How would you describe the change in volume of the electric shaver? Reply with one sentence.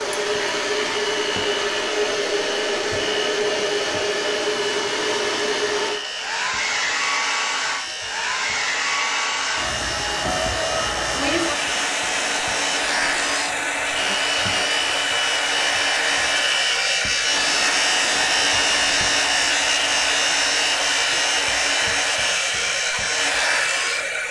The loudness of the electric shaver goes up.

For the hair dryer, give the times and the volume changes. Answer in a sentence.
The hair dryer can be heard from 0.0 to 24.2 s, at a steady volume.